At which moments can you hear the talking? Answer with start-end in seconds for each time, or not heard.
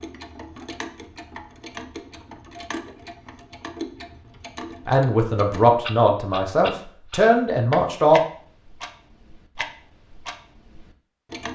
4.8-8.2.